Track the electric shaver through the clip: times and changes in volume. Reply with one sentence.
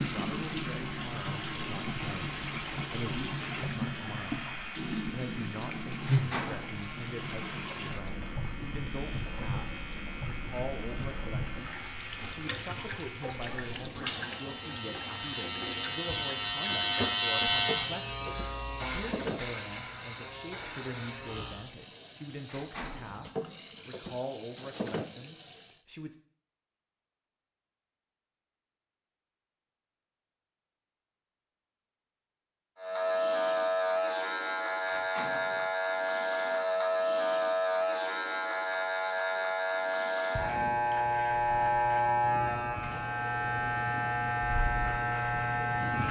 You can hear the electric shaver from 0.2 to 21.7 s, getting louder; and from 32.8 to 46.0 s, at a steady volume.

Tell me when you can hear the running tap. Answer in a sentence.
The running tap can be heard from 0.0 to 25.9 s.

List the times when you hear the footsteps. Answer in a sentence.
You can't hear the footsteps here.